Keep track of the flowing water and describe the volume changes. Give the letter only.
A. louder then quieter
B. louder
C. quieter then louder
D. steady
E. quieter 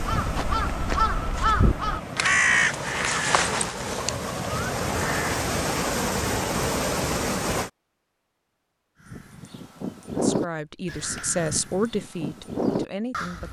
B.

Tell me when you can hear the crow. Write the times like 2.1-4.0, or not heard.
0.0-5.3, 9.1-13.4.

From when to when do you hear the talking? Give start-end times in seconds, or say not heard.
10.1-13.4.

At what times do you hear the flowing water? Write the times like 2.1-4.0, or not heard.
0.0-7.7.